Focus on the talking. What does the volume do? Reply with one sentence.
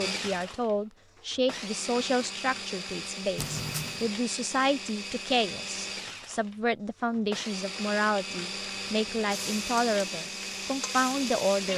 The volume of the talking stays about the same.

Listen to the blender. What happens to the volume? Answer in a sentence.
The volume of the blender stays about the same.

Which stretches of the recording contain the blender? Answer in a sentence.
The blender can be heard from 0.0 to 11.7 s.